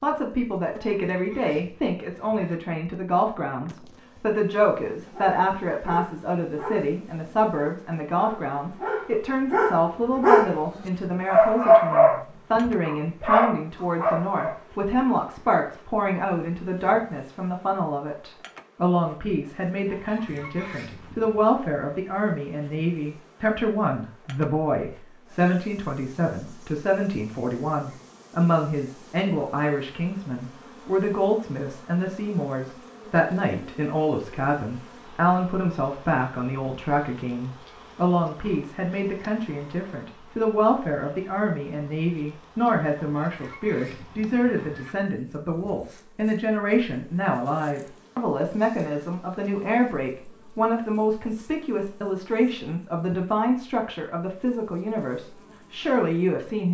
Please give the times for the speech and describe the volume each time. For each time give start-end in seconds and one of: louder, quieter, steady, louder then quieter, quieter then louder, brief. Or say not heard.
0.0-56.6 steady.